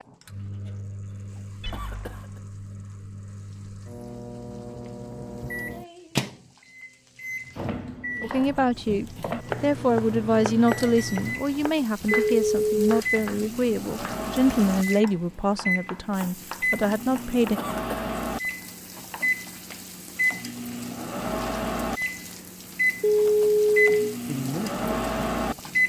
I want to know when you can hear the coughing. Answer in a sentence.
You can hear the coughing from 1.7 to 2.4 s and from 17.6 to 18.1 s.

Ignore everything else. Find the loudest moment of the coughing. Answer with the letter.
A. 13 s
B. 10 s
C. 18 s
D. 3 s
C.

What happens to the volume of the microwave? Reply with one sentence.
The volume of the microwave goes up.